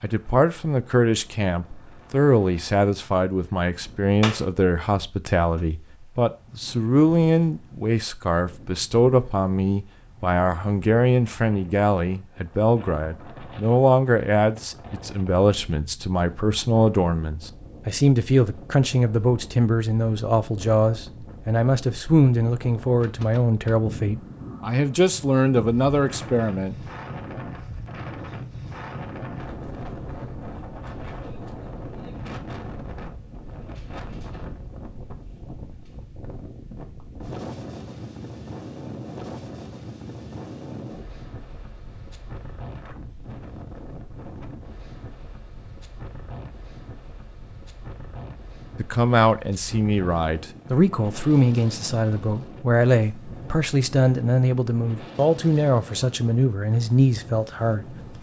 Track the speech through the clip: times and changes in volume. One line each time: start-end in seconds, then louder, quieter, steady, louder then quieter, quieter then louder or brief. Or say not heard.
0.0-26.8 steady
48.8-58.1 steady.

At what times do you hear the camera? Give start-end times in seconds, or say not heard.
not heard.